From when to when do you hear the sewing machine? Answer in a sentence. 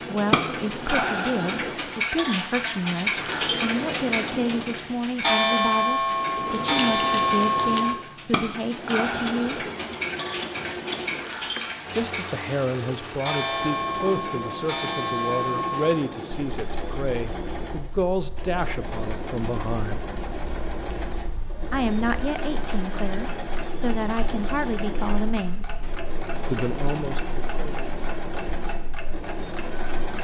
You can hear the sewing machine from 0.0 to 30.1 s.